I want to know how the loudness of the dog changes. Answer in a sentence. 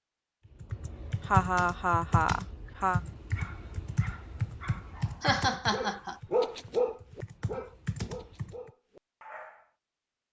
The loudness of the dog goes up, then down.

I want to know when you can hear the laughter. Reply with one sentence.
You can hear the laughter from 0.8 to 3.0 s and from 5.2 to 6.2 s.